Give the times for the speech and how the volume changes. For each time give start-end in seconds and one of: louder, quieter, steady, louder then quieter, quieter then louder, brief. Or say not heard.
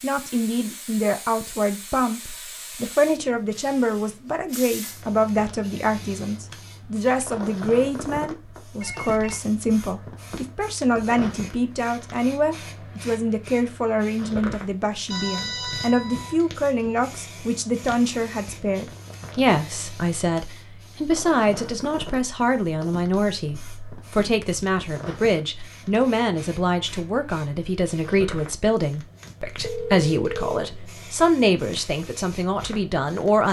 0.0-33.4 steady.